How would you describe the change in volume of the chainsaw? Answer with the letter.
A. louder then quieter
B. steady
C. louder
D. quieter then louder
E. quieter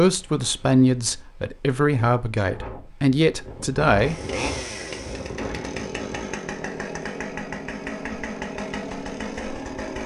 B.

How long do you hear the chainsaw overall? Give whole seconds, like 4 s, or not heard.
6 s.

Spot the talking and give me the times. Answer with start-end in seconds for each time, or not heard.
0.0-4.2.